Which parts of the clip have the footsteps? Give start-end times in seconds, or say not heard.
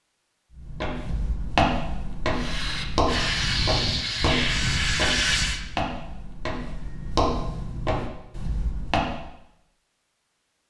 0.6-9.2.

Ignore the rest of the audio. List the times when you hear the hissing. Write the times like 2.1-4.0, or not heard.
2.3-5.6.